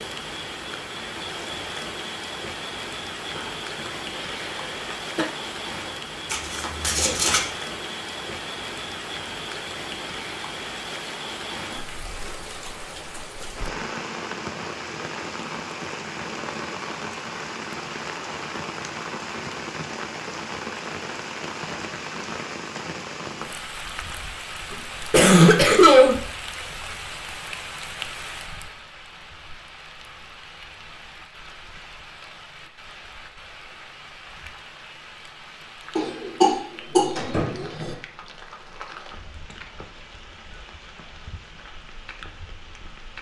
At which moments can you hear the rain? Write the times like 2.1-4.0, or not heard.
0.0-43.1.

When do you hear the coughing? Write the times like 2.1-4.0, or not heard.
3.4-5.2, 24.7-26.1, 36.0-37.9.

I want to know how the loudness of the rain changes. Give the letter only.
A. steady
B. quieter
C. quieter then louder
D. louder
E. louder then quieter
B.